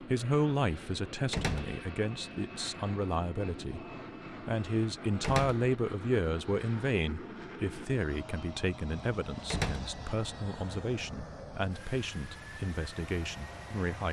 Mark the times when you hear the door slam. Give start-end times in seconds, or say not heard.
1.3-1.8, 5.2-5.7, 9.5-9.9.